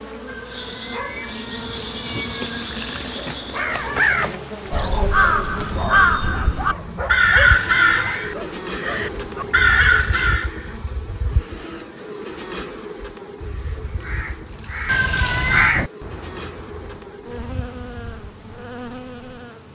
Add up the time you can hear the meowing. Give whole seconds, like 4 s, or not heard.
4 s.